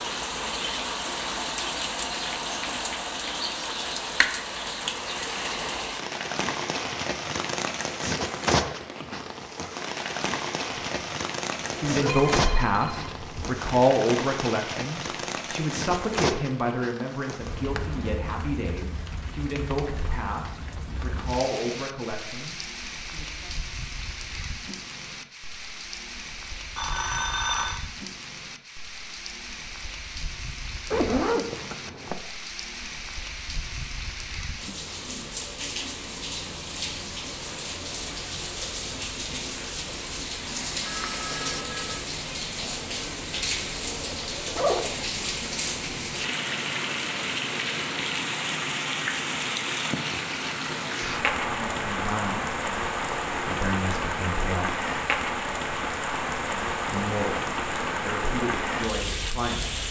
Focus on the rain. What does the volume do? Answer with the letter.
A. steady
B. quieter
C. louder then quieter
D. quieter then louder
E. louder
D.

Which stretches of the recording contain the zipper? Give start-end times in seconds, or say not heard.
11.6-12.2, 30.9-32.1, 44.2-45.0.